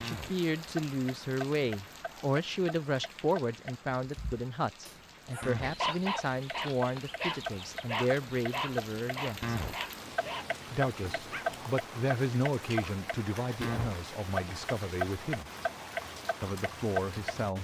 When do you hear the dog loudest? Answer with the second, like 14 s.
6 s.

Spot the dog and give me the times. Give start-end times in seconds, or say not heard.
5.3-11.4.